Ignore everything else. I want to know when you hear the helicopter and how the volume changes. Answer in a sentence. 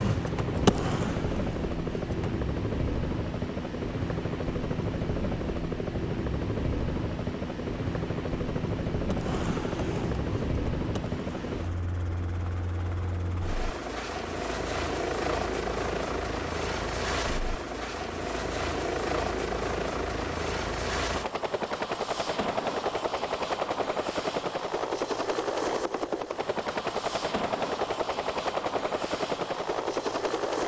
You can hear the helicopter from 0.0 to 30.6 s, at a steady volume.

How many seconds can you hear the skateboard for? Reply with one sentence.
The skateboard can be heard for 5 seconds in total.